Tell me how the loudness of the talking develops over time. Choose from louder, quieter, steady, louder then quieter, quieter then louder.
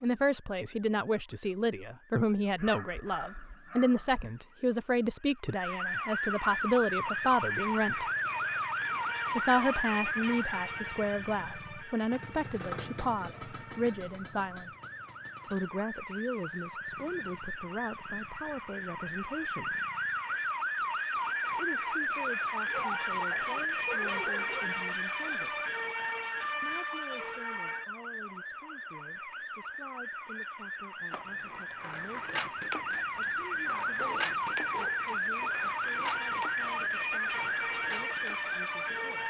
quieter.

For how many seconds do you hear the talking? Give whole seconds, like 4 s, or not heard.
34 s.